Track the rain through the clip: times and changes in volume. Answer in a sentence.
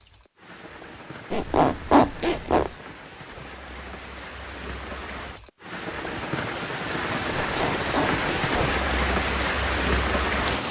You can hear the rain from 0.0 to 10.6 s, getting louder.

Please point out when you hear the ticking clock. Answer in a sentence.
The ticking clock can't be heard in this clip.